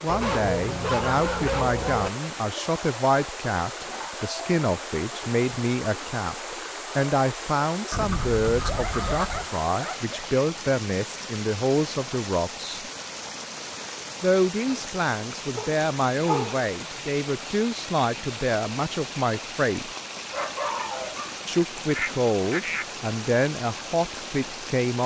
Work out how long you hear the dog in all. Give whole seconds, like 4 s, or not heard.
6 s.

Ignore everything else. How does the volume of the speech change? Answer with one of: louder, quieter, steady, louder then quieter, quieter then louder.
steady.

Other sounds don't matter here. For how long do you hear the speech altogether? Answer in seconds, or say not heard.
22 s.